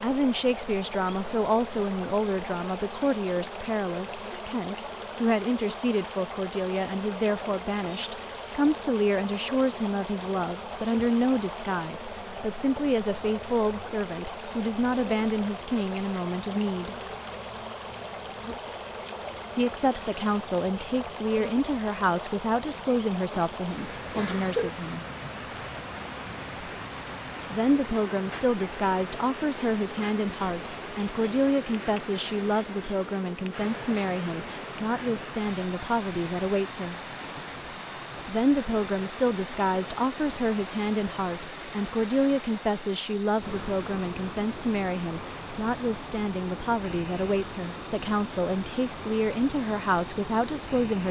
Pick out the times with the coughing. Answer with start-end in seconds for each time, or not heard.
23.3-24.7.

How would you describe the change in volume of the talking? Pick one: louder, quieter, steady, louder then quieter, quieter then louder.
steady.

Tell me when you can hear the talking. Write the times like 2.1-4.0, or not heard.
0.0-16.9, 19.6-25.1, 27.5-37.0, 38.2-51.0.